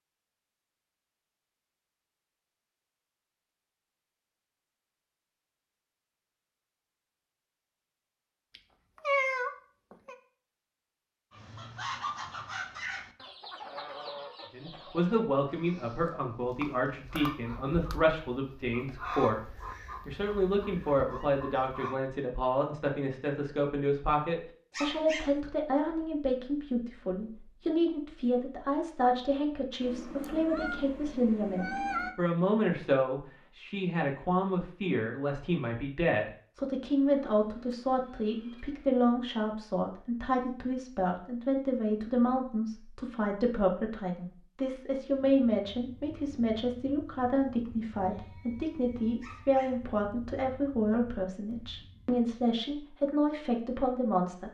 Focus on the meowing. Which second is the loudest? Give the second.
9 s.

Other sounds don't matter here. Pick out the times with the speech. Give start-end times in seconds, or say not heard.
14.5-54.4.